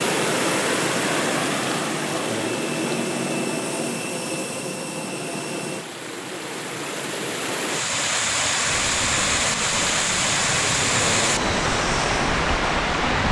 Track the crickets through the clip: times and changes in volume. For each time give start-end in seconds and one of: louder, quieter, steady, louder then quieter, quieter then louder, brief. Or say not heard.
not heard.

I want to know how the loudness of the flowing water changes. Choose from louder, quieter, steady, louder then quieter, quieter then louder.
quieter then louder.